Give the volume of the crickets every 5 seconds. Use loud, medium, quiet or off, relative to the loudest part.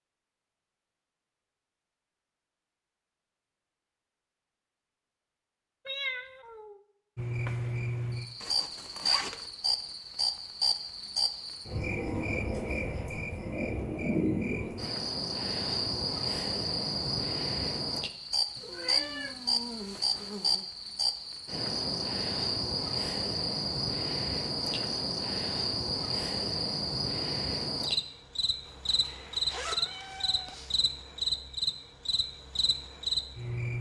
off, loud, loud, loud, loud, loud, loud.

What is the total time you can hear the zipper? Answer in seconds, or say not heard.
3 s.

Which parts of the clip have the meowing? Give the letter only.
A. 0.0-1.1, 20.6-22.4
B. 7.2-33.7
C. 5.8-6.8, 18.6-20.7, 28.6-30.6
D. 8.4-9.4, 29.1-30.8
C.